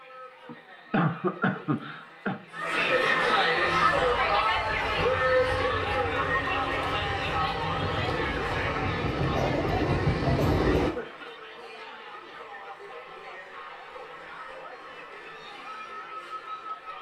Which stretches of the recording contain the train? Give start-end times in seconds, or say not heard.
3.8-10.9.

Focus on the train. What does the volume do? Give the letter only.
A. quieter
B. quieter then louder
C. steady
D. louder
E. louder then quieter
D.